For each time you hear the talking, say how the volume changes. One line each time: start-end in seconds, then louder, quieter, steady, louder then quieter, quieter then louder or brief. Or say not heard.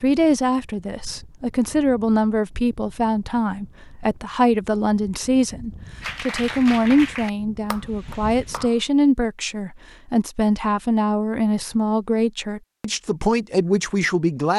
0.0-14.5 steady.